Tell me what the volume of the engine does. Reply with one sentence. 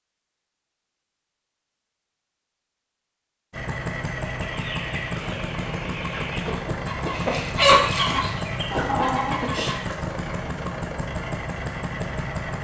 The loudness of the engine stays about the same.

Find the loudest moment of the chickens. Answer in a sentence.
The volume of the chickens peaks at 8 seconds.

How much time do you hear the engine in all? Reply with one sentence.
The engine can be heard for 9 seconds in total.